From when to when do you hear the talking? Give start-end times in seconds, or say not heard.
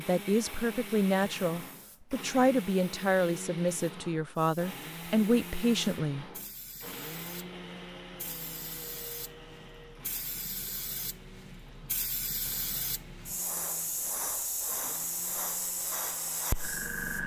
0.0-6.2.